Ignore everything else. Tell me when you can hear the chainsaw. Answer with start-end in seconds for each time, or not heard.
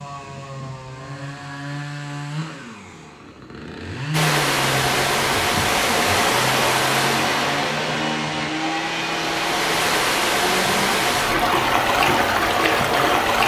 0.0-13.4.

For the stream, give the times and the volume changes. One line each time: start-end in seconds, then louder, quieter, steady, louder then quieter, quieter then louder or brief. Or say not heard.
4.1-13.4 quieter then louder.